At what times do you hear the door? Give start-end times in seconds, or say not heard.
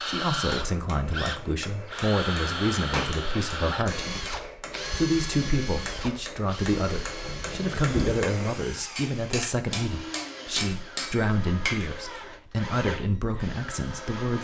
2.9-3.5, 7.3-8.2.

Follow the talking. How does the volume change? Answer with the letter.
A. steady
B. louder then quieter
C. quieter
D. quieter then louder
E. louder
A.